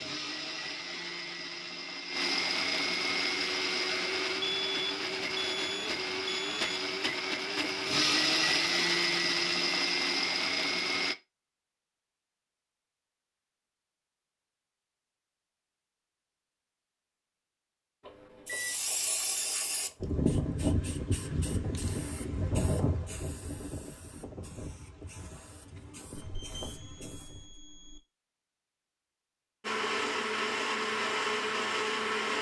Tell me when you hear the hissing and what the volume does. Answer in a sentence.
The hissing can be heard from 18.4 to 27.6 s, getting quieter.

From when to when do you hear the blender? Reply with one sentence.
You can hear the blender from 0.0 to 11.2 s and from 29.6 to 32.3 s.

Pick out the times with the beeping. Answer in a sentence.
You can hear the beeping from 4.4 to 6.8 s, from 18.0 to 18.8 s and from 26.1 to 28.0 s.